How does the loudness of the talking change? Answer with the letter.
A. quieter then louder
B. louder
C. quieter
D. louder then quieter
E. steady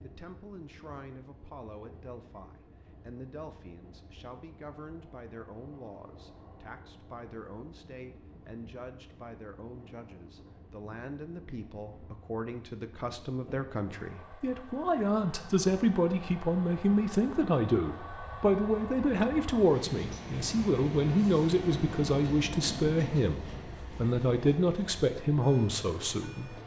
B.